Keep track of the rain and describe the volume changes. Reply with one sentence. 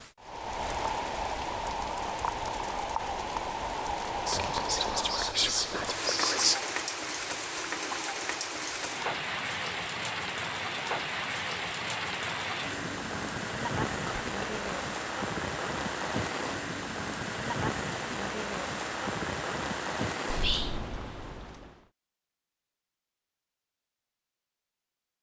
The volume of the rain stays about the same.